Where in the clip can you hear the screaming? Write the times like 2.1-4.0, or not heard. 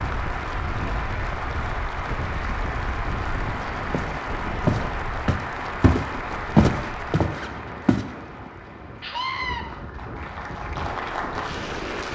9.0-9.7.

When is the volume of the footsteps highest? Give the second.
7 s.